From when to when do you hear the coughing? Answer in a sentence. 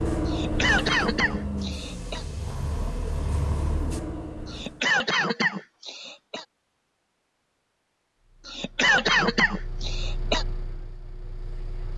You can hear the coughing from 0.2 to 2.2 s, from 4.5 to 6.5 s and from 8.4 to 10.4 s.